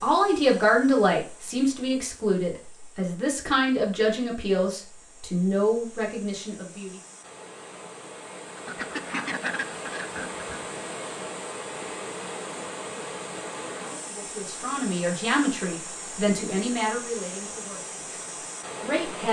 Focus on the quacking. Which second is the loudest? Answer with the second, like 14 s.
9 s.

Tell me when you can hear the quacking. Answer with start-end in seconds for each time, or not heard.
8.6-10.7.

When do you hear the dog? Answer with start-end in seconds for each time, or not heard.
not heard.